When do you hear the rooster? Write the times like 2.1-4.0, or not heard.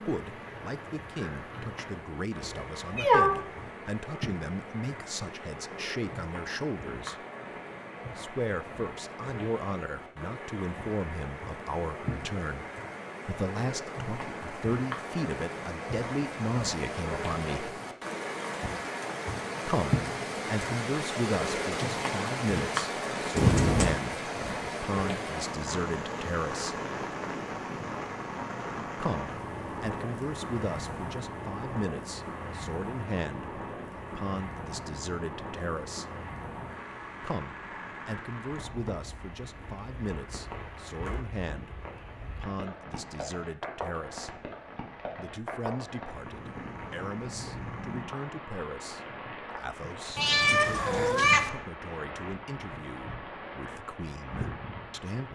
not heard.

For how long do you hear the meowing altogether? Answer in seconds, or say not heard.
3 s.